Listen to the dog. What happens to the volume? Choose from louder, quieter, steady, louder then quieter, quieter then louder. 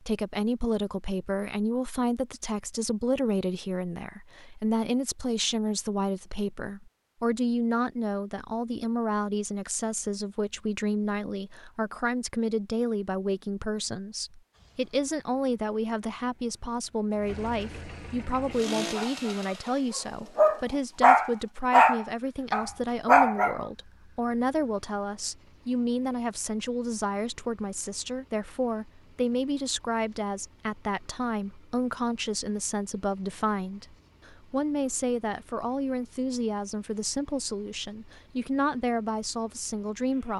louder.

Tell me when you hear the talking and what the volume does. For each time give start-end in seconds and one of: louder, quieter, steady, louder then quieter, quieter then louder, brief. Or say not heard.
0.0-40.3 steady.